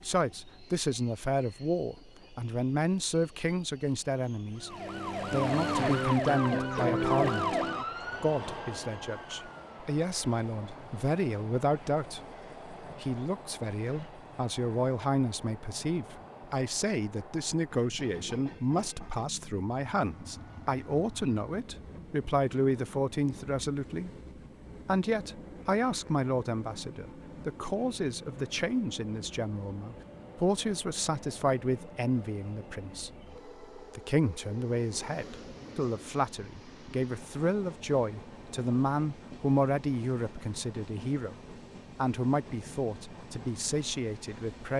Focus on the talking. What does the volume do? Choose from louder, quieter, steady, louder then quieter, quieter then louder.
steady.